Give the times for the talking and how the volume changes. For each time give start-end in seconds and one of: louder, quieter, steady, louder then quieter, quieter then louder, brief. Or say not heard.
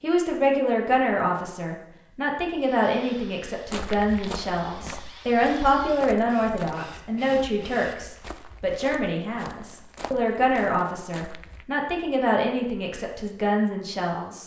0.0-14.4 steady.